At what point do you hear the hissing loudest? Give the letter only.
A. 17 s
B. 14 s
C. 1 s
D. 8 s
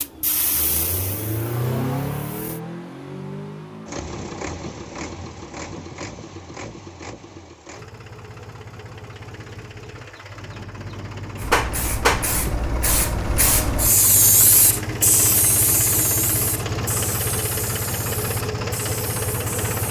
B.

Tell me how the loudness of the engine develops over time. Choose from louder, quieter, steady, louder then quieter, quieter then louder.
quieter then louder.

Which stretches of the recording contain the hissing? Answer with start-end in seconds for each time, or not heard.
0.0-2.6, 11.3-19.8.